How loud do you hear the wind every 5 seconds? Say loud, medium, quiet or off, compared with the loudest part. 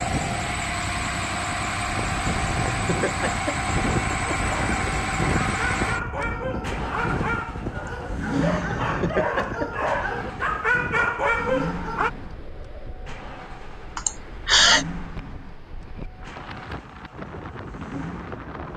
loud, loud, medium, medium.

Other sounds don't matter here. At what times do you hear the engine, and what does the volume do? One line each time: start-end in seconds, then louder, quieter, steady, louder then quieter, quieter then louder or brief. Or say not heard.
0.0-18.7 quieter.